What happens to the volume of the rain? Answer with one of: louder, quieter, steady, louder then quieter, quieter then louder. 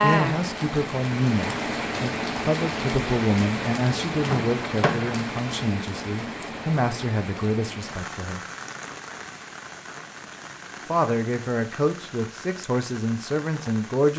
quieter.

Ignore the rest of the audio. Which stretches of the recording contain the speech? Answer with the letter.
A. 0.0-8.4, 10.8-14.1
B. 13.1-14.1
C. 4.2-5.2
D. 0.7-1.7
A.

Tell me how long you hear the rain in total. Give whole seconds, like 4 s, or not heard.
14 s.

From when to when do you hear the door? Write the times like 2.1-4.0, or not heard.
4.2-5.2.